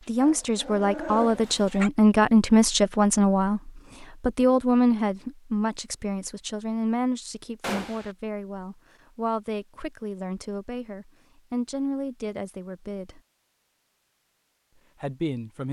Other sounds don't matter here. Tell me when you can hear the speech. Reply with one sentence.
The speech can be heard from 0.1 to 13.2 s and from 15.0 to 15.6 s.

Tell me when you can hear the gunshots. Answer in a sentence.
You can hear the gunshots from 7.6 to 8.2 s.